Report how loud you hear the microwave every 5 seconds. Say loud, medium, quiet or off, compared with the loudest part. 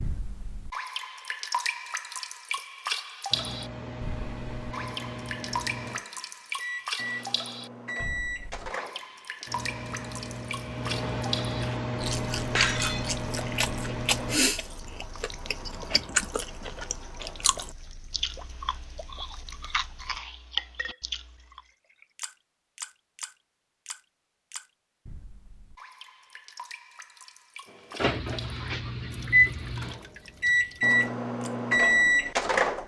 quiet, quiet, medium, off, off, loud, loud.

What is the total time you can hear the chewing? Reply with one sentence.
The chewing can be heard for 10 seconds in total.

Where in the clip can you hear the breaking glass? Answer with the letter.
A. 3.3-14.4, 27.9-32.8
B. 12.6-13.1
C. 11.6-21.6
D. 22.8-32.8
B.